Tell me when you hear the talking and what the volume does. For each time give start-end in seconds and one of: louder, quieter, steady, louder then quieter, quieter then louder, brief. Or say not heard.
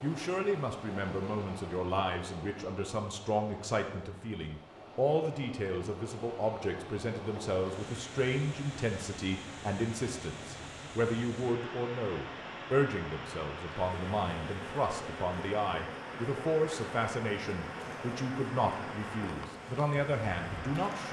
0.0-21.0 steady.